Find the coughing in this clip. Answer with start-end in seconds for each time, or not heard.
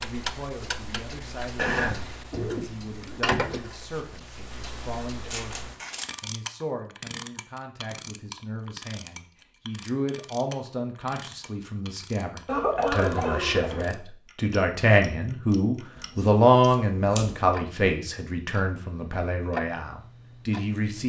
1.6-3.6, 12.4-13.9.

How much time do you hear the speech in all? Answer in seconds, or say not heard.
21 s.